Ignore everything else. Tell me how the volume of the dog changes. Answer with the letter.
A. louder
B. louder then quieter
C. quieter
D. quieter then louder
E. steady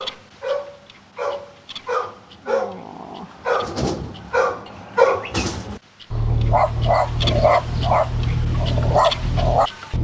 A.